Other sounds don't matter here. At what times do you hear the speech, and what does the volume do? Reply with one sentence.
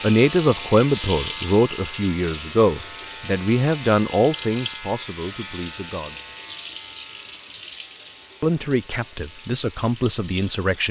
You can hear the speech from 0.0 to 6.2 s, getting quieter; and briefly from 8.4 to 10.8 s.